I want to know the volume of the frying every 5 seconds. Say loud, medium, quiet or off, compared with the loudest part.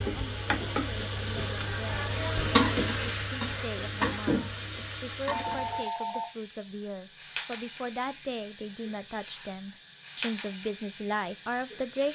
loud, medium, medium.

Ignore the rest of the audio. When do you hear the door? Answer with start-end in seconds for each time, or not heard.
not heard.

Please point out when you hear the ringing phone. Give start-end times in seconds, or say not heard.
5.3-6.2.